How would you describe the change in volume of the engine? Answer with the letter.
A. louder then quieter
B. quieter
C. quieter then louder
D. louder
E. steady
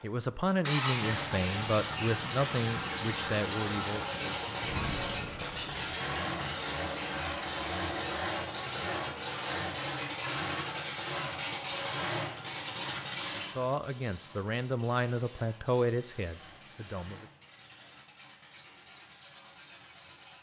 B.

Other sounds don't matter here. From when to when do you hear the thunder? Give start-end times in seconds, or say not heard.
4.6-6.0.